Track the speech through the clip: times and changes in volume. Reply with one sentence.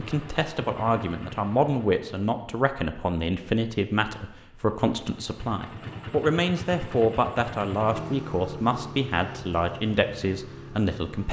You can hear the speech from 0.0 to 11.2 s, at a steady volume.